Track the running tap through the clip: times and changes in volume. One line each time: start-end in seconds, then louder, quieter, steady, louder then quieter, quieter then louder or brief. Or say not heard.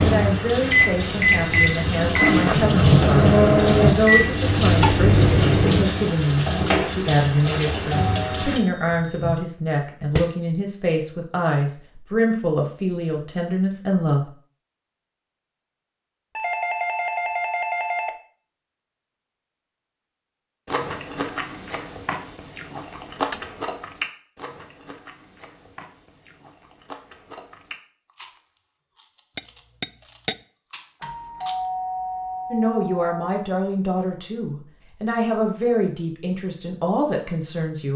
0.0-8.6 steady.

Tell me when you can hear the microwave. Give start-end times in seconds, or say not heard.
0.0-6.0.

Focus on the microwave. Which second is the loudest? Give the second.
3 s.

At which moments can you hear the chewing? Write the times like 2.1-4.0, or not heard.
20.6-31.6.